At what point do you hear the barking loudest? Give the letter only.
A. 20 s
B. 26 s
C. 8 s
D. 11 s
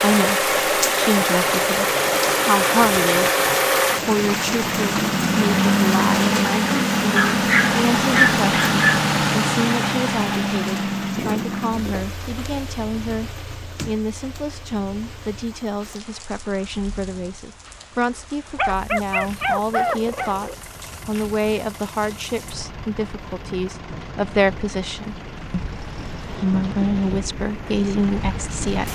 C.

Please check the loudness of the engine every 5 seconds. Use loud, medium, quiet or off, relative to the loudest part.
loud, loud, medium, quiet, quiet, quiet.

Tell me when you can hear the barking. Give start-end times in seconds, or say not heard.
7.2-9.1, 18.6-20.6.